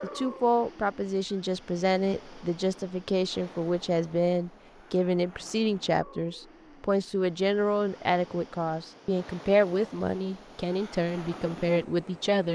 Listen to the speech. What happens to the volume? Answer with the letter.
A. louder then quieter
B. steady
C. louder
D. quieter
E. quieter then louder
B.